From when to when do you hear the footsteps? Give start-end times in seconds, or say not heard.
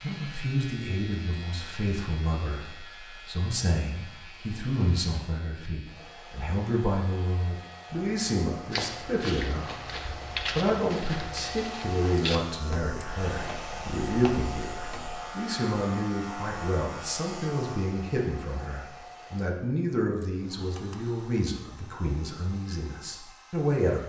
8.7-15.2.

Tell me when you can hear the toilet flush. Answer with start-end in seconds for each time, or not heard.
not heard.